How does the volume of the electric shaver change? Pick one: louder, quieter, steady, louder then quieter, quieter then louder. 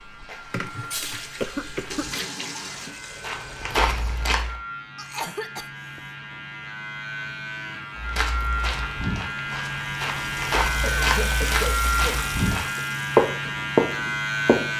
louder.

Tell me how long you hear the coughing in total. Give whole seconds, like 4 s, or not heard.
3 s.